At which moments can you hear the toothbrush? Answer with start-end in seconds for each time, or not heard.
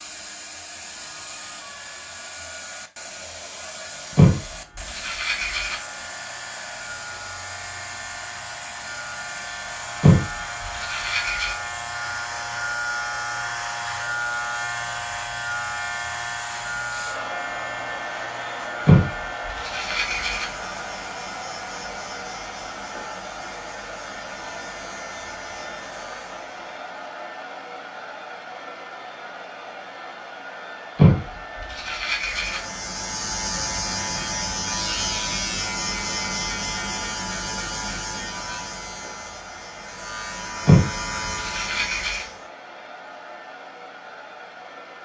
4.2-5.8, 10.0-11.6, 18.9-20.4, 30.9-32.6, 40.6-42.2.